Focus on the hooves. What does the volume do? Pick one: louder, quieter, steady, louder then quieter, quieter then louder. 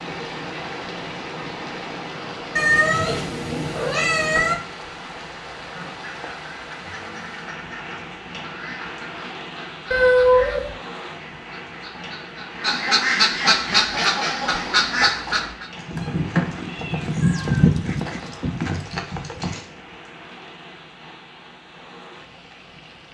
louder then quieter.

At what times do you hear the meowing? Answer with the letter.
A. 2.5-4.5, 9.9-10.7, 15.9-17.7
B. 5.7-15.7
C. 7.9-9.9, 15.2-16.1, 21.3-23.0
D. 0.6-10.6
A.